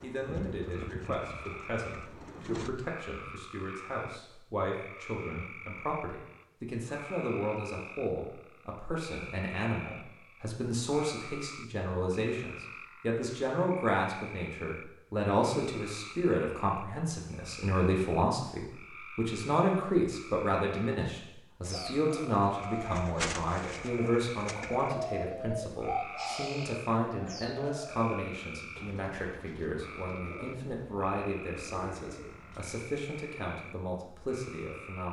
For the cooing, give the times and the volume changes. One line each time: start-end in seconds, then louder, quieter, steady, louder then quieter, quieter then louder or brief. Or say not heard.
0.0-2.7 brief
21.6-32.8 quieter.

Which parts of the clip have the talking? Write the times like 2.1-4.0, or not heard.
0.0-35.0.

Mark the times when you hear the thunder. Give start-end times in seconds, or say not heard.
not heard.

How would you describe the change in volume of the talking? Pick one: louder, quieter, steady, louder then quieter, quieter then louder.
louder then quieter.